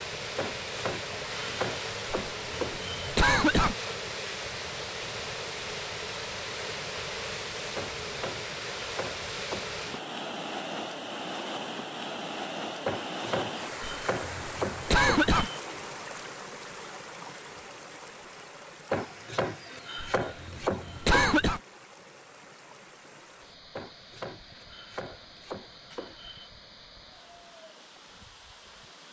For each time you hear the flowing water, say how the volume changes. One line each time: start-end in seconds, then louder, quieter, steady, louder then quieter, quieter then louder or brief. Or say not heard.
0.0-29.0 quieter.